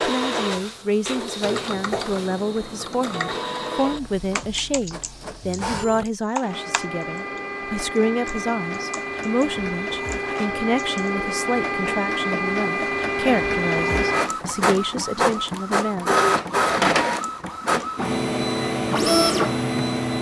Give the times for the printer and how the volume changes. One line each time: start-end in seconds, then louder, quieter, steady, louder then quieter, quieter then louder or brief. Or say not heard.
0.0-20.1 louder.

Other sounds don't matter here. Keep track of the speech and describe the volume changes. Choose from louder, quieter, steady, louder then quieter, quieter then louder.
steady.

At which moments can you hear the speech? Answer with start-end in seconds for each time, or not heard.
0.1-16.1.